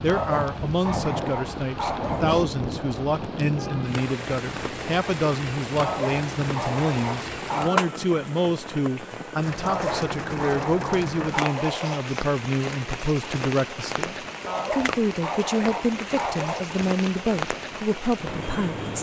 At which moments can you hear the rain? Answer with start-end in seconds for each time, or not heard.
0.0-18.9.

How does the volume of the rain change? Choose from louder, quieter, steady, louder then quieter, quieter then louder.
steady.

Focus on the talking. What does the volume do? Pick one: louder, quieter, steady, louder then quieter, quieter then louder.
steady.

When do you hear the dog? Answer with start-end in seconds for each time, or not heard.
0.1-2.5, 5.8-7.9, 9.6-12.2, 14.4-16.7.